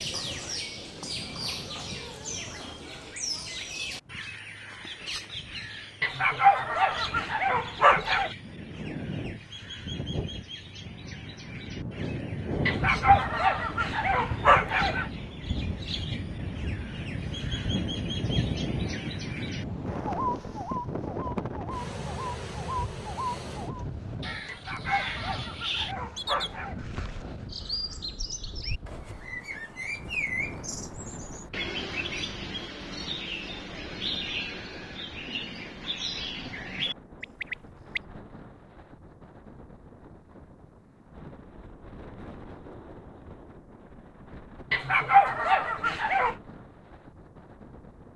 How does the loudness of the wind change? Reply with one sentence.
The loudness of the wind goes up, then down.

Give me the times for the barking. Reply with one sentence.
You can hear the barking from 6.0 to 8.3 s, from 12.7 to 15.1 s, from 24.4 to 26.9 s and from 44.7 to 46.4 s.